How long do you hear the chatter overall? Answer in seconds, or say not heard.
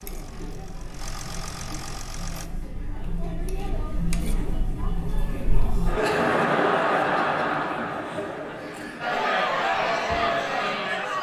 11 s.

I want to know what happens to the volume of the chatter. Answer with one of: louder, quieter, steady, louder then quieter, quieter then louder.
louder.